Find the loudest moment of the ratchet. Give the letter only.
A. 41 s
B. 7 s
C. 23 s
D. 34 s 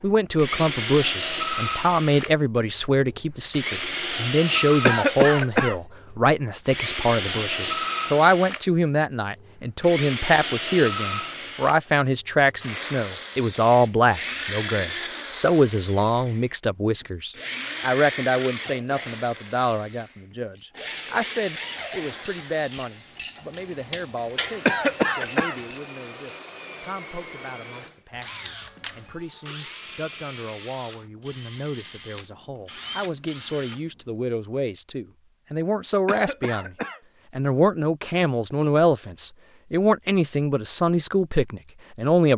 C.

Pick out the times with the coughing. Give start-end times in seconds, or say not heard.
4.8-5.8, 24.6-25.6, 36.0-37.0.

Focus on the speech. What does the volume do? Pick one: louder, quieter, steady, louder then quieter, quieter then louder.
quieter then louder.